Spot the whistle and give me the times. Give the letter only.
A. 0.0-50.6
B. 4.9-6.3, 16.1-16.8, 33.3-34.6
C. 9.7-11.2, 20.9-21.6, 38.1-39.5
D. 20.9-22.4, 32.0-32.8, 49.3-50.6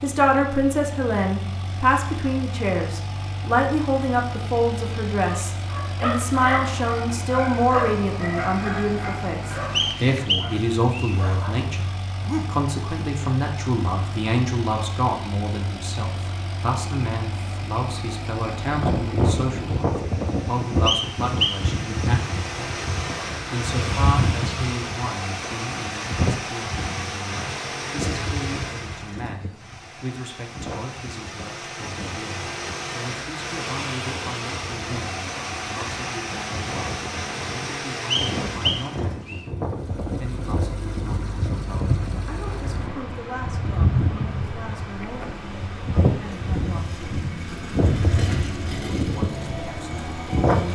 C.